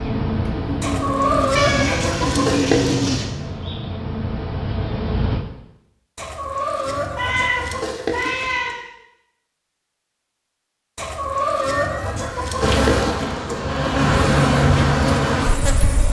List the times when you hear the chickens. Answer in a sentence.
The chickens can be heard from 0.8 to 3.1 s, from 6.2 to 8.8 s and from 10.9 to 13.8 s.